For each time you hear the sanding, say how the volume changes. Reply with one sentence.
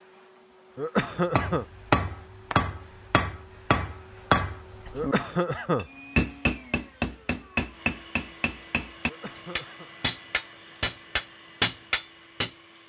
The sanding can't be heard in this clip.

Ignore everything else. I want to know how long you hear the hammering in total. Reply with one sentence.
You can hear the hammering for 11 seconds altogether.